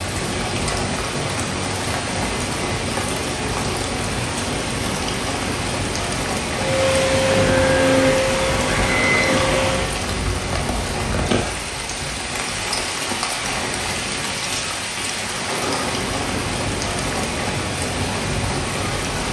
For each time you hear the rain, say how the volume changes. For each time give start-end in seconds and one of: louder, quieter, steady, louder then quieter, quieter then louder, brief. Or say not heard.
0.0-19.2 steady.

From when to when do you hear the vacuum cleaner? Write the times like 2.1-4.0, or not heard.
6.5-9.9.